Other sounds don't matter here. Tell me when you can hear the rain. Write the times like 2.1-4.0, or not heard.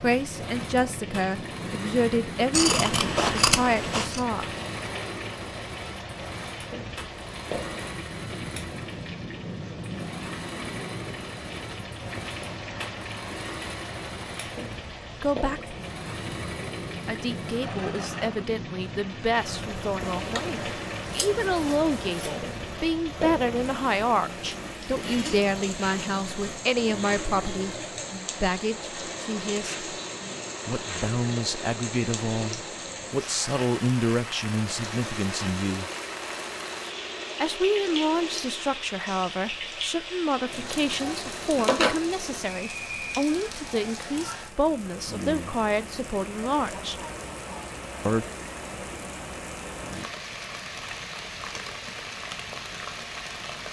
0.0-53.6.